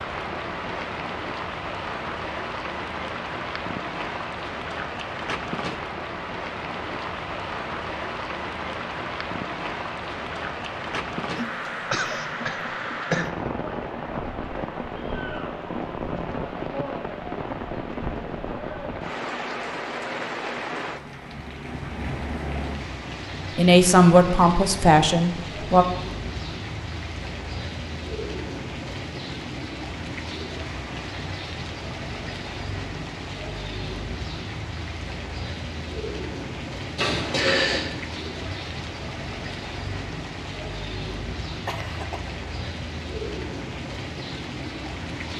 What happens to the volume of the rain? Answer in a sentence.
The volume of the rain stays about the same.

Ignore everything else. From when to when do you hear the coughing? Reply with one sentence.
The coughing can be heard from 11.3 to 13.3 s and from 41.6 to 42.2 s.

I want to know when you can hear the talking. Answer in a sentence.
The talking can be heard from 23.6 to 25.9 s.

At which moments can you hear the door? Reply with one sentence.
You can hear the door from 37.0 to 37.9 s.